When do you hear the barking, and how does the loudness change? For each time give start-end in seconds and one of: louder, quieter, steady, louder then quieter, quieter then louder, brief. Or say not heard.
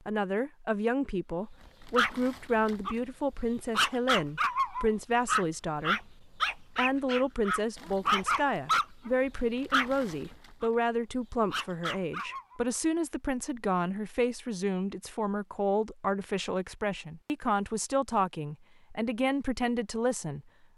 1.9-12.6 quieter.